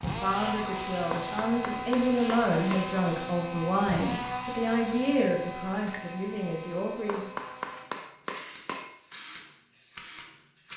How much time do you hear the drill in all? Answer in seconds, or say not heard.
11 s.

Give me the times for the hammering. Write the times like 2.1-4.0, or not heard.
1.1-3.0, 7.0-9.0.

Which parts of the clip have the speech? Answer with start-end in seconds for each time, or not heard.
0.0-7.3.